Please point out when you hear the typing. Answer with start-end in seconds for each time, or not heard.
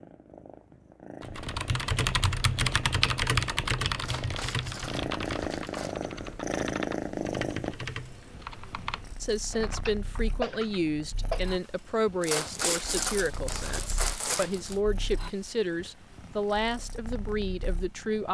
1.2-11.5.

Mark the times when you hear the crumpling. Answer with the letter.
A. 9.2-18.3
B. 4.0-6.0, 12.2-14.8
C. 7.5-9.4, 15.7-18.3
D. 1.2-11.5
B.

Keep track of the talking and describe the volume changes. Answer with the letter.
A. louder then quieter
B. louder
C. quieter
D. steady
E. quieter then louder
D.